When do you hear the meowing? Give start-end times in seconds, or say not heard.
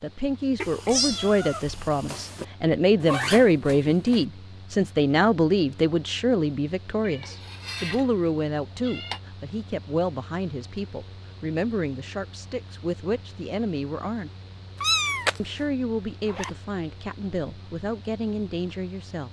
0.6-2.5, 7.0-9.2, 14.8-15.4.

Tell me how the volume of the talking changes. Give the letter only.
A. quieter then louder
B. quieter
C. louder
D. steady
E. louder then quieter
B.